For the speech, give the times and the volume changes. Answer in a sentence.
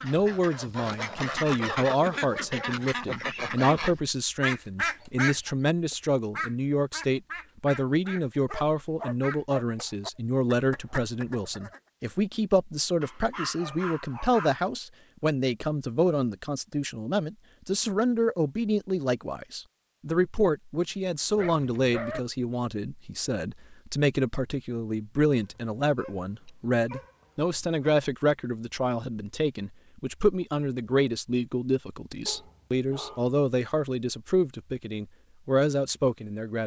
The speech can be heard from 0.0 to 36.6 s, at a steady volume.